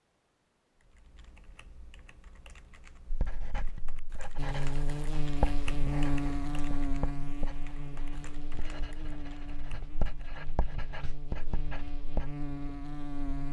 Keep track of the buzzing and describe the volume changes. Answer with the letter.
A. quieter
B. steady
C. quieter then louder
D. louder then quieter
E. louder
C.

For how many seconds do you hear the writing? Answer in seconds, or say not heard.
9 s.